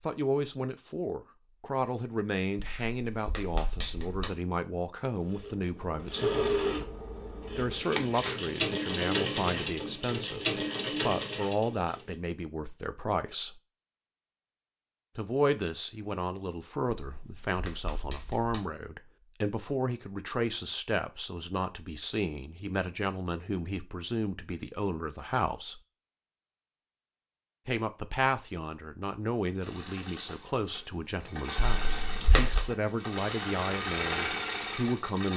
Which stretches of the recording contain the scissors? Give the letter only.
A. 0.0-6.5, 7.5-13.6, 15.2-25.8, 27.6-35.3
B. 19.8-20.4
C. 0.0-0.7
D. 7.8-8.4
D.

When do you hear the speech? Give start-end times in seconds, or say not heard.
0.0-6.5, 7.5-13.6, 15.2-25.8, 27.6-35.3.